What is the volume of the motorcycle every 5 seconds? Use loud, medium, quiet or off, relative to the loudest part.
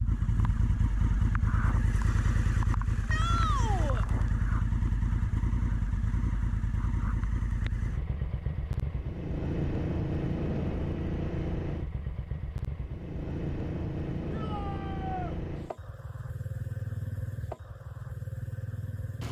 loud, loud, loud, medium.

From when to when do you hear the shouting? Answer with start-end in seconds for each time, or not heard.
3.0-4.0, 14.3-15.3.